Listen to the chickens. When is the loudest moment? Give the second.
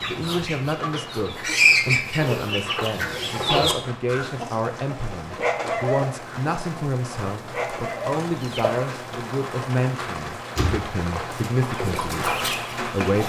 2 s.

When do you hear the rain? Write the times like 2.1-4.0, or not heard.
0.0-13.2.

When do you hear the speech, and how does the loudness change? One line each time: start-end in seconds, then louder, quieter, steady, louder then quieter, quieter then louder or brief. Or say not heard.
0.1-13.2 steady.